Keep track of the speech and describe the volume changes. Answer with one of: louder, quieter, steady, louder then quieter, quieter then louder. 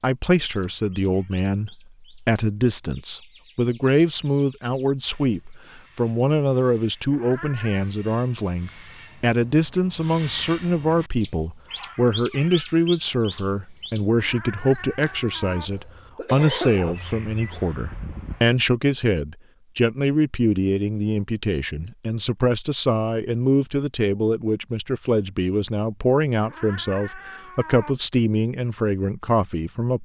steady.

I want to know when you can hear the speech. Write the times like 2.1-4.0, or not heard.
0.0-29.9.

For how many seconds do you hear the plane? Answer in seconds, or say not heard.
not heard.